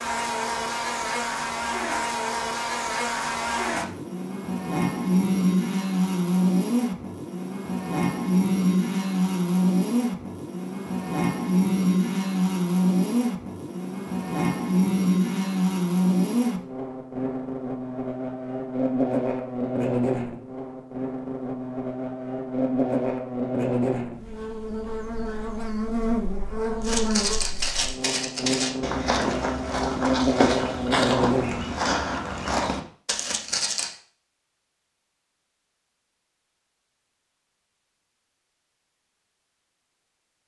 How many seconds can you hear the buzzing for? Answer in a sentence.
The buzzing can be heard for 32 seconds in total.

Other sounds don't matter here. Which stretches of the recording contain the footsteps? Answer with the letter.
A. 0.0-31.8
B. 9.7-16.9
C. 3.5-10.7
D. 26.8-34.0
D.